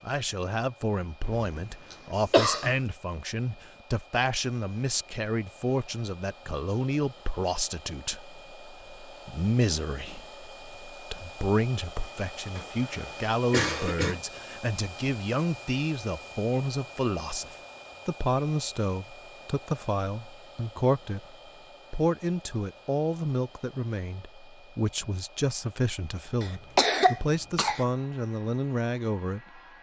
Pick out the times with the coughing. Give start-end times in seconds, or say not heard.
1.2-2.8, 12.6-14.2, 26.4-27.9.